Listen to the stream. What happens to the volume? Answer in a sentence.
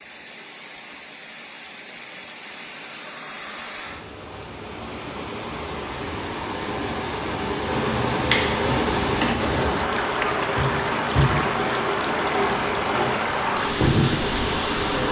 The volume of the stream goes up.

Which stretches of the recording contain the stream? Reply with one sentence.
The stream can be heard from 0.0 to 15.0 s.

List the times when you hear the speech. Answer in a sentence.
The speech can't be heard in this clip.